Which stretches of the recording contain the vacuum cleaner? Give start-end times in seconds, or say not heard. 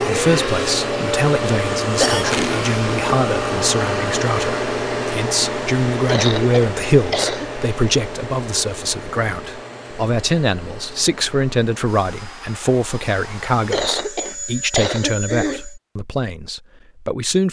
0.0-15.8.